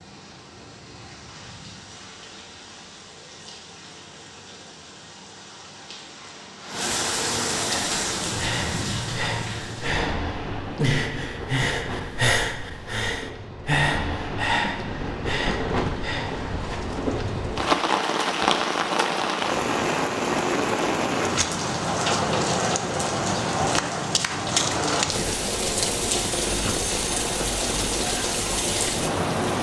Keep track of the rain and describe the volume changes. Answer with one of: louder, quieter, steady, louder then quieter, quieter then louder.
louder.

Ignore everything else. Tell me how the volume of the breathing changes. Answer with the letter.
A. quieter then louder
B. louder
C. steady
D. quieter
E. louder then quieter
E.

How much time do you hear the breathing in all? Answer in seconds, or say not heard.
9 s.